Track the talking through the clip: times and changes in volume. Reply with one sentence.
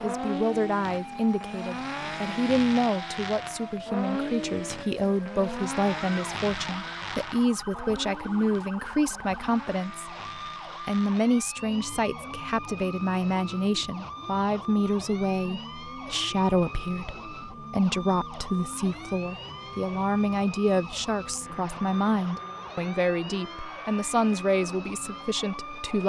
The talking can be heard from 0.0 to 10.1 s, at a steady volume; and from 10.8 to 26.0 s, at a steady volume.